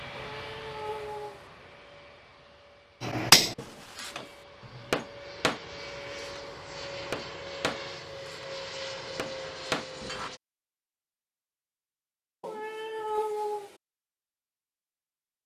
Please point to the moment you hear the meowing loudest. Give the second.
13 s.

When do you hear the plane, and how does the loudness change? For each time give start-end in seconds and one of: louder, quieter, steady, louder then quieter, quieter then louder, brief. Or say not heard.
0.0-10.4 quieter then louder.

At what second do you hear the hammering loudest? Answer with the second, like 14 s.
3 s.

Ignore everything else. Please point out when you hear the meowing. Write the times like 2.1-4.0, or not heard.
0.1-1.5, 12.4-13.8.